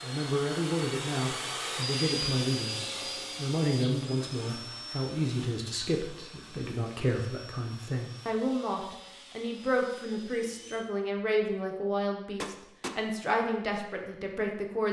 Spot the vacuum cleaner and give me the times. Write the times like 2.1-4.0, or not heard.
0.0-10.8.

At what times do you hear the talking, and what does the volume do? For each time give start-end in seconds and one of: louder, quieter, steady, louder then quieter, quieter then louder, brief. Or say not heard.
0.0-14.8 steady.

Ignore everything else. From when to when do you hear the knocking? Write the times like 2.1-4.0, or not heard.
12.3-12.9.